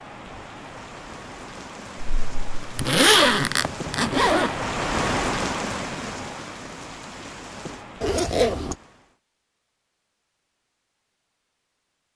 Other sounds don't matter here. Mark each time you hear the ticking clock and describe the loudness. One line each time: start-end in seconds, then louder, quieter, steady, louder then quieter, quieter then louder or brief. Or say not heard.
not heard.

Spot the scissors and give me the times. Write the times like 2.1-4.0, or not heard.
not heard.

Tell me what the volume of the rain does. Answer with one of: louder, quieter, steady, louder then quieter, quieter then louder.
louder then quieter.